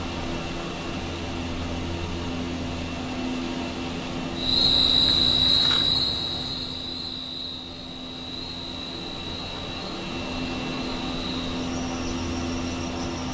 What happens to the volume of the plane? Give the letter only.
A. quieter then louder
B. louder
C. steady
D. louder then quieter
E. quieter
A.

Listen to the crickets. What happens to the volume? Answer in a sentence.
The volume of the crickets goes down.